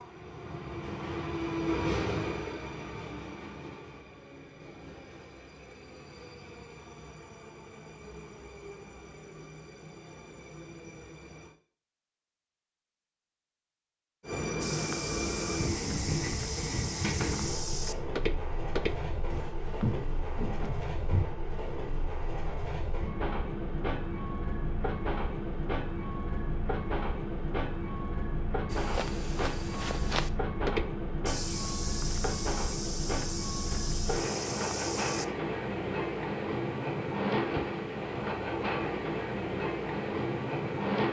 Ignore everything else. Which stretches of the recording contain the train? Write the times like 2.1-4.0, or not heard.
0.0-11.6, 14.2-41.0.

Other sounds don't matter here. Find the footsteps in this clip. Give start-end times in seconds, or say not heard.
14.6-21.2, 28.7-35.2.